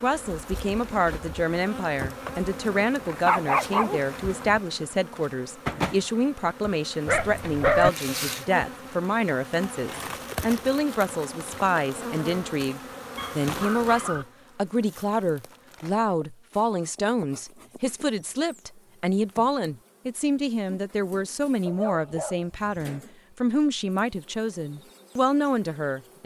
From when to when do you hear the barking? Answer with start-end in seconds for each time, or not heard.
3.0-4.6, 7.0-7.9, 13.2-14.2, 21.6-22.8.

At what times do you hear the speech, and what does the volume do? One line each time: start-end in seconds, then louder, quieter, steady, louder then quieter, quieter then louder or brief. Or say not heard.
0.0-26.2 steady.